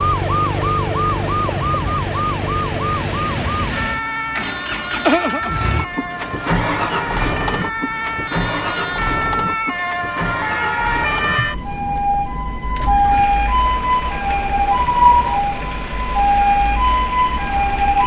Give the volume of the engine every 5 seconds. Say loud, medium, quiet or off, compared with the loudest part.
medium, loud, medium, medium.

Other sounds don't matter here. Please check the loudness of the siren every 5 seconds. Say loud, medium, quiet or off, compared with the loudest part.
medium, medium, loud, loud.